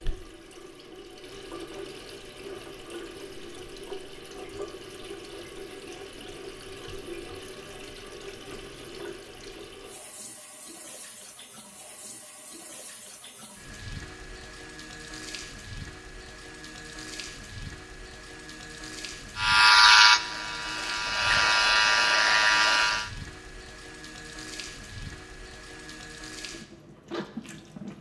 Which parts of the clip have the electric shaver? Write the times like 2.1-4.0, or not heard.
19.4-23.1.